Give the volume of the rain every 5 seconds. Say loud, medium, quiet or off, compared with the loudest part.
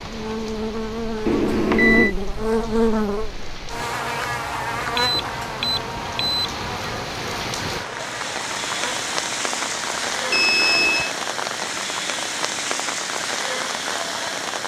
quiet, loud, loud.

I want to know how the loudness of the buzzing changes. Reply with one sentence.
The volume of the buzzing goes down.